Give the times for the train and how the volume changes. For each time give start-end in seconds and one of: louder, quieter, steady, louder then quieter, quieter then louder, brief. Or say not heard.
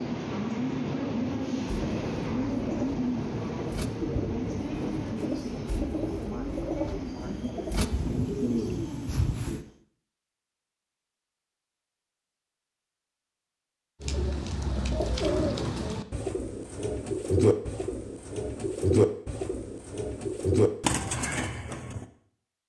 0.0-9.8 quieter.